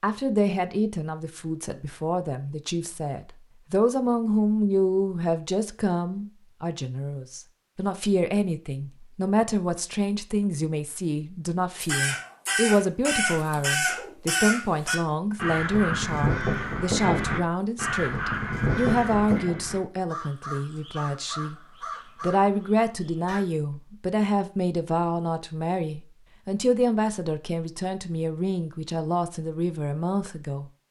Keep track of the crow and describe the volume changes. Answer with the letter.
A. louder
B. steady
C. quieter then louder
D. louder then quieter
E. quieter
E.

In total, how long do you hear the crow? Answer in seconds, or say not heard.
12 s.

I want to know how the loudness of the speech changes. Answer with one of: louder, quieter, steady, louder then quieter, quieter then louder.
steady.